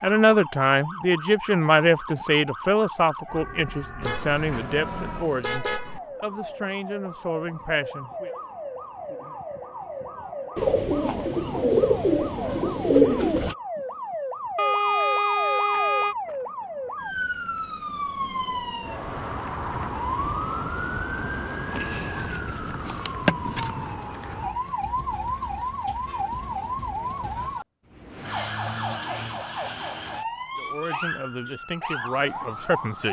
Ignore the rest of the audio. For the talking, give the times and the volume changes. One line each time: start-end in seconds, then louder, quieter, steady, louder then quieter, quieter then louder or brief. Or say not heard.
0.0-8.3 quieter
30.6-33.0 brief.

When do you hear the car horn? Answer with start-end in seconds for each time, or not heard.
4.0-6.0, 14.6-16.1, 29.8-31.6.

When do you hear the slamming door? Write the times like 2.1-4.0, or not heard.
not heard.